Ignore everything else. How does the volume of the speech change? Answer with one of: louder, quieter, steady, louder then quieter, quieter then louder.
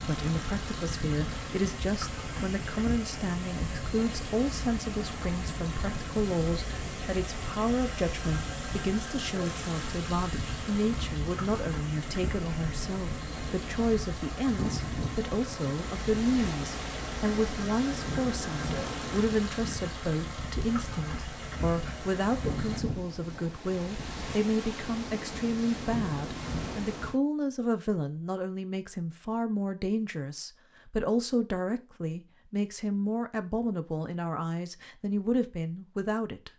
steady.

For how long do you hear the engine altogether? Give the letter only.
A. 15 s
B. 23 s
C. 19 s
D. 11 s
B.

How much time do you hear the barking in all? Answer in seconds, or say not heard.
not heard.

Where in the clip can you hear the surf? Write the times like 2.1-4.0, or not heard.
0.0-27.2.